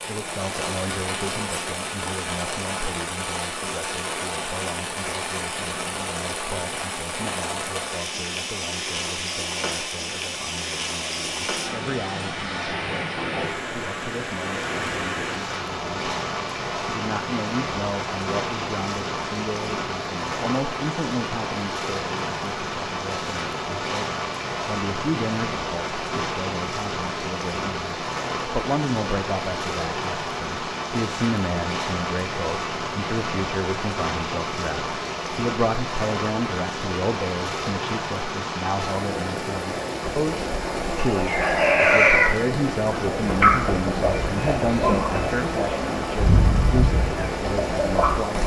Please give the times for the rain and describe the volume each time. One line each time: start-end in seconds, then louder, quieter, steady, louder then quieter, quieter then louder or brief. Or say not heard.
0.0-48.4 steady.